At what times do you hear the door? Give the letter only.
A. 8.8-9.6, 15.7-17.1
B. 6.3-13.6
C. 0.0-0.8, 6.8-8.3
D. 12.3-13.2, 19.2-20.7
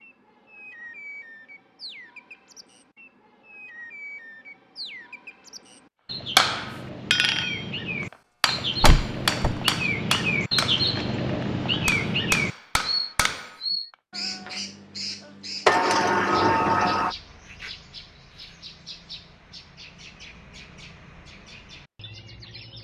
A.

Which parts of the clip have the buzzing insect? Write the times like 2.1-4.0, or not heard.
not heard.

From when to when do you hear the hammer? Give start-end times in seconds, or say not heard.
6.3-13.6.